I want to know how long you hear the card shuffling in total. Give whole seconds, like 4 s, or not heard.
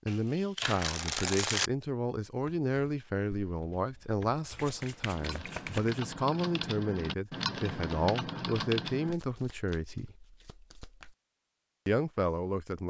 5 s.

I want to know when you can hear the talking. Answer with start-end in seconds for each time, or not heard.
0.1-10.2, 11.8-12.8.